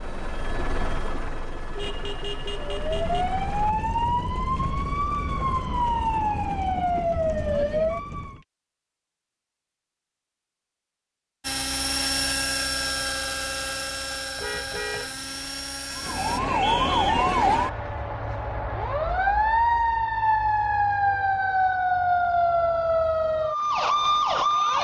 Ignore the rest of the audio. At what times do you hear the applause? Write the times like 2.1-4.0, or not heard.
not heard.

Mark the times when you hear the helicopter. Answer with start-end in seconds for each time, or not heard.
0.0-3.8, 11.4-16.4.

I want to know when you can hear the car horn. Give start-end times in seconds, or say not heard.
1.8-3.2, 14.3-15.3.